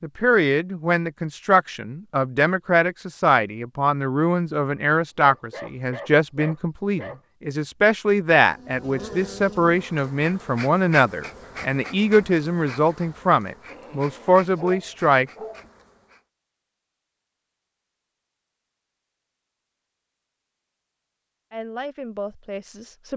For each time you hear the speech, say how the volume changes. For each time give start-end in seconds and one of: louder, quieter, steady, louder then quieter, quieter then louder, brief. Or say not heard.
0.0-15.2 steady
21.5-23.1 brief.